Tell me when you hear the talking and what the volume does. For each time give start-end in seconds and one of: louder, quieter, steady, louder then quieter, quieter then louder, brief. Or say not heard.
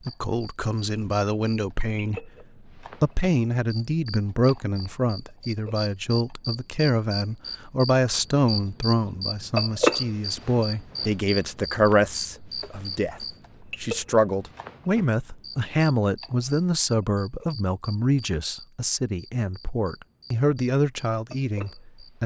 0.1-22.2 steady.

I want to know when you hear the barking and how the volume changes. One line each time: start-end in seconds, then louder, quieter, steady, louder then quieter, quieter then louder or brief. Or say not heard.
not heard.